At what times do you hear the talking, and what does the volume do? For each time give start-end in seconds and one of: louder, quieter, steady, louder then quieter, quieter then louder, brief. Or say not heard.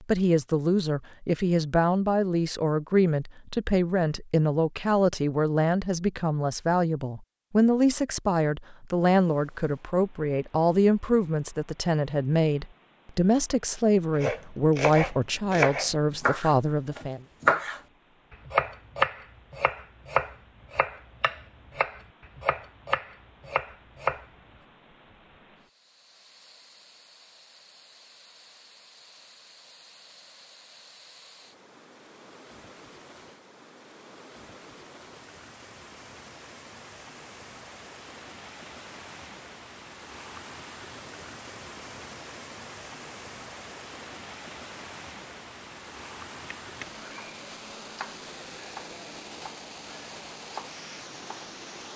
0.0-17.2 steady.